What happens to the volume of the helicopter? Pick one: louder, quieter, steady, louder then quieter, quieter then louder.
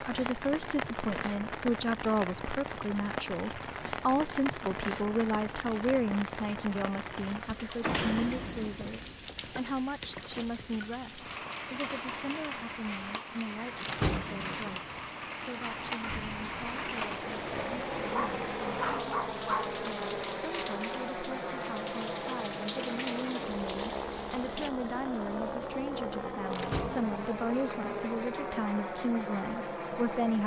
steady.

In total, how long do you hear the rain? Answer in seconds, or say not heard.
25 s.